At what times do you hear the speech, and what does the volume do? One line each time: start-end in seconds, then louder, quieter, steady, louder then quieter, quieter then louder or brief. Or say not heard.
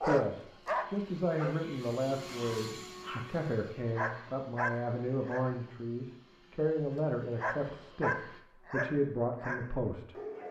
0.0-10.2 steady.